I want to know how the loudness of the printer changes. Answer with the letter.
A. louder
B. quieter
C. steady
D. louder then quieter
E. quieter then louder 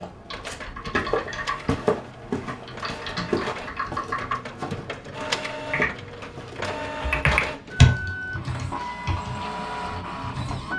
A.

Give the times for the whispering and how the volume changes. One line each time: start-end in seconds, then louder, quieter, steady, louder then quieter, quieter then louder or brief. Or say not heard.
not heard.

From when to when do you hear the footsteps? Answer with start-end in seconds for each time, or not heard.
0.0-6.7.